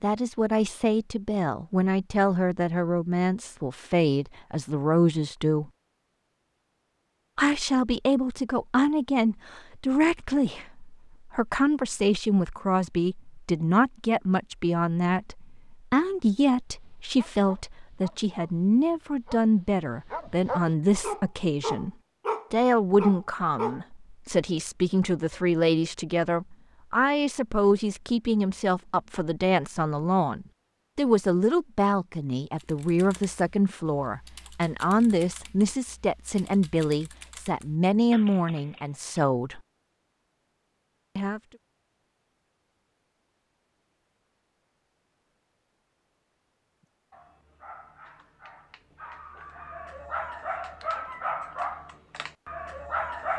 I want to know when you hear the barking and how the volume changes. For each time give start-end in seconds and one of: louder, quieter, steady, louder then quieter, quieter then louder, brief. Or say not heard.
16.6-23.8 louder
46.8-53.3 louder then quieter.